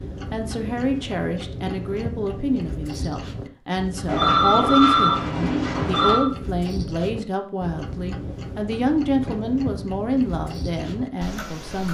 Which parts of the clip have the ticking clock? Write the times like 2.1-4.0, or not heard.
0.0-11.8.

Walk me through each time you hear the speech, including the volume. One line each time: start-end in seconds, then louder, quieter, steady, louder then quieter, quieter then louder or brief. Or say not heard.
0.3-11.8 steady.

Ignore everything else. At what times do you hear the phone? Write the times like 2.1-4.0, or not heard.
4.0-6.2.